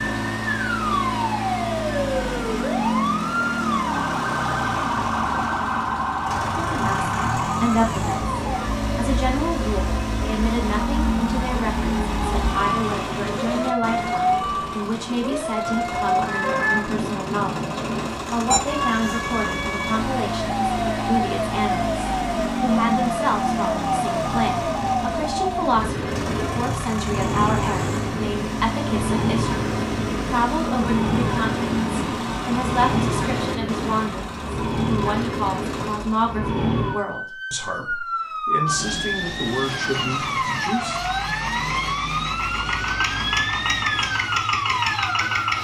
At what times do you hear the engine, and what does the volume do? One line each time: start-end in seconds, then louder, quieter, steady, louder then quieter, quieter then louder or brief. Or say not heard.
0.0-36.4 steady
39.7-45.6 louder.